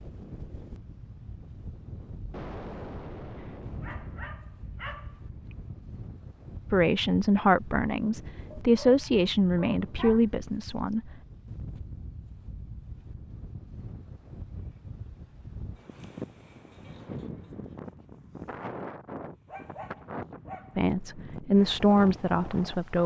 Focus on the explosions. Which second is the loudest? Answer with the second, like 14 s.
3 s.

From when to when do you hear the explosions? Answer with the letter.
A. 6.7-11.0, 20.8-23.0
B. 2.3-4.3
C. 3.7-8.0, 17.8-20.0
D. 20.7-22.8
B.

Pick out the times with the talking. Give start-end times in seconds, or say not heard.
6.7-11.0, 20.8-23.0.